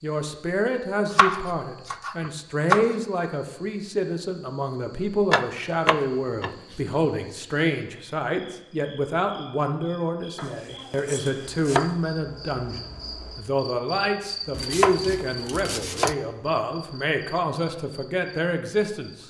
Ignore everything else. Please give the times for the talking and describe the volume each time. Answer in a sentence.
The talking can be heard from 0.0 to 19.2 s, at a steady volume.